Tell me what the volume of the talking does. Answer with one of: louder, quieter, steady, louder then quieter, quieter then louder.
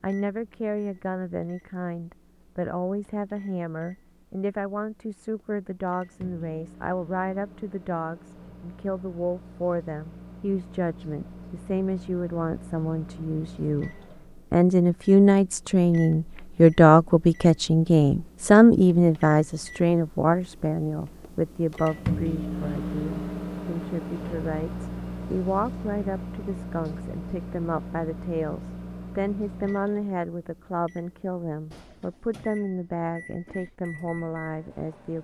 louder then quieter.